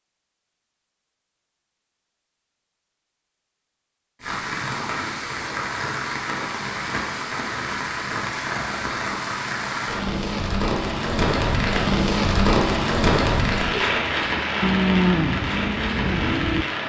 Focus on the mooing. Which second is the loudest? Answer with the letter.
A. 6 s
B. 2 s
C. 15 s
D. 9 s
C.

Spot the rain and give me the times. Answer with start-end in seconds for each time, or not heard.
4.2-16.8.